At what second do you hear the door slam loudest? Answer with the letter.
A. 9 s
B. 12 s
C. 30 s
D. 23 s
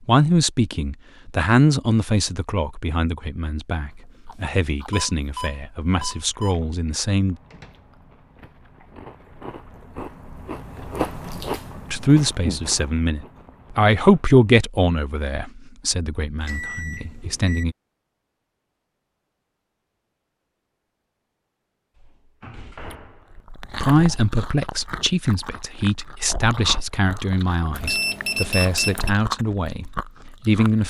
D.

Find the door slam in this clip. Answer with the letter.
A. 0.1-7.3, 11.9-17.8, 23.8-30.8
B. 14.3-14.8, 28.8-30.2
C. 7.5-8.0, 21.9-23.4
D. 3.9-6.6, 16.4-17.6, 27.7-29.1
C.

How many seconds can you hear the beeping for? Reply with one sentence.
You can hear the beeping for 5 seconds altogether.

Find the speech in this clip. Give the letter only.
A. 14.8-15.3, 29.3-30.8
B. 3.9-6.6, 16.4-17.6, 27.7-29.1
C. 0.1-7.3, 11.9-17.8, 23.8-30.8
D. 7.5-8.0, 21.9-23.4
C.